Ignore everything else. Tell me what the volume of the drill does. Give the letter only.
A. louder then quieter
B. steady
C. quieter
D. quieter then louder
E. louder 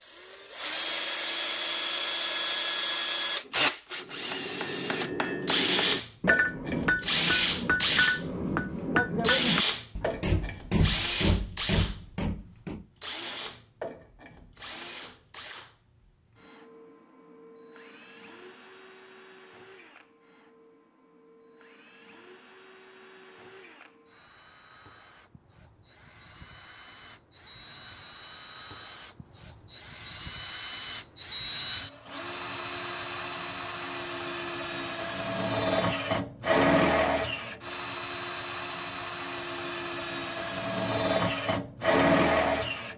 D.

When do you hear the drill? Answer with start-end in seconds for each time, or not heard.
0.1-42.9.